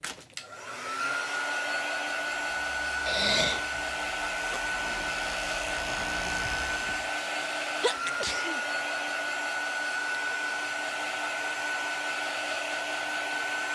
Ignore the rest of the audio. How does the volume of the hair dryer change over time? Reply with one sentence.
The loudness of the hair dryer stays about the same.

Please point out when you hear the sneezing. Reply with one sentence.
You can hear the sneezing from 3.0 to 3.6 s and from 7.2 to 8.6 s.